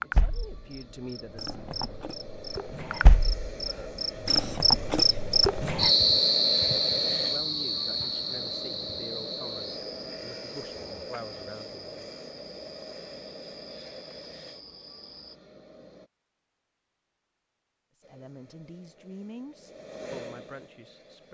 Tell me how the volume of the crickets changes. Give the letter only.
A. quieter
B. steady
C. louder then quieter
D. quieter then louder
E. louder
C.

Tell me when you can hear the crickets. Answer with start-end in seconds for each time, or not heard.
0.0-15.3.